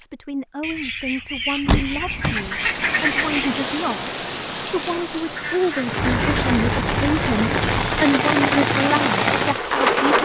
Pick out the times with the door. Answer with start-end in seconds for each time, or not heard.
1.6-2.5, 6.0-8.0.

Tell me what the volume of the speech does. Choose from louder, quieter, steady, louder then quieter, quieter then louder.
louder.